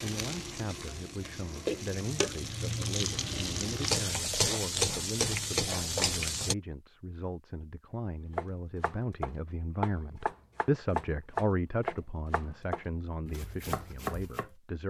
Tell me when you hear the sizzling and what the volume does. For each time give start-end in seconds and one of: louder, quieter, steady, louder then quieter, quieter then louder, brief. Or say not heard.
0.0-6.5 louder.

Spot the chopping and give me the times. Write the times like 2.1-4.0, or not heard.
8.3-14.5.